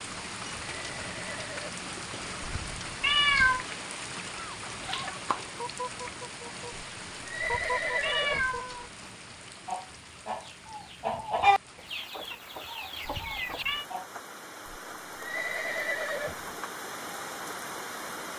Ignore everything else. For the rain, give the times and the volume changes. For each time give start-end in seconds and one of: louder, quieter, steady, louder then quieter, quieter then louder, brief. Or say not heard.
0.0-18.3 quieter then louder.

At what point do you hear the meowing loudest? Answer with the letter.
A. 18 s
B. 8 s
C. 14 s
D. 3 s
D.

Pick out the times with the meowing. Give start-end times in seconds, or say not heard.
2.4-3.6, 7.4-8.9, 13.1-13.8.